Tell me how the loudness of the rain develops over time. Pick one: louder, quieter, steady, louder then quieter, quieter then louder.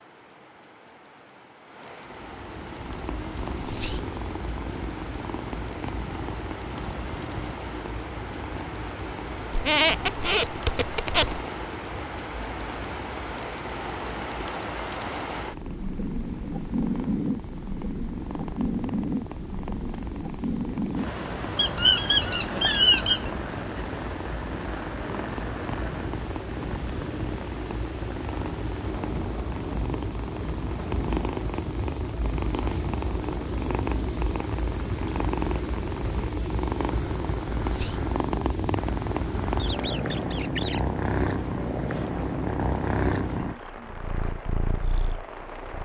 louder then quieter.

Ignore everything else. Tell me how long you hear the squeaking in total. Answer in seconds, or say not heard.
5 s.